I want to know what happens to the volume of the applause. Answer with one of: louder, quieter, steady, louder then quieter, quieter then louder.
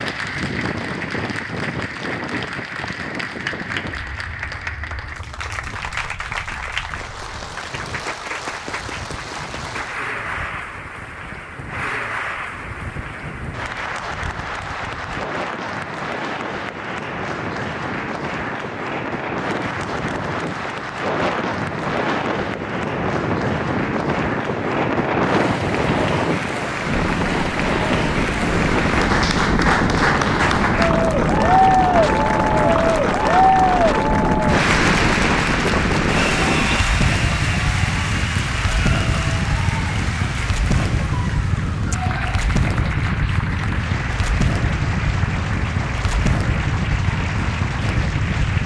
louder then quieter.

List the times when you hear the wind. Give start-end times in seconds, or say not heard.
0.0-48.6.